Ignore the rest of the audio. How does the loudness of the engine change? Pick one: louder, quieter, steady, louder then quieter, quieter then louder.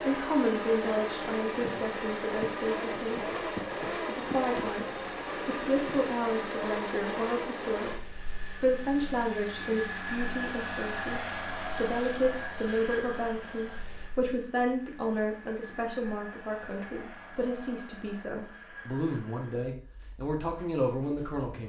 quieter.